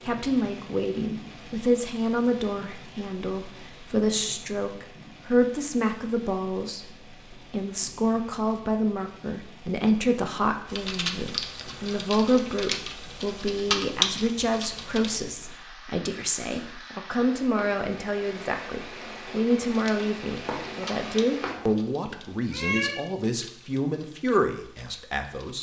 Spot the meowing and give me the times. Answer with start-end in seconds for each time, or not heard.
21.5-22.9.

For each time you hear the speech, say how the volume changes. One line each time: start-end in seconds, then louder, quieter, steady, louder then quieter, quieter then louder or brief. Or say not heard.
0.1-25.5 steady.